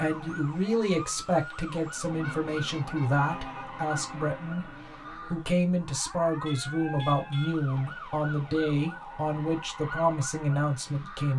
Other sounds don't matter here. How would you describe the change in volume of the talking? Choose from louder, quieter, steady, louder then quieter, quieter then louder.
steady.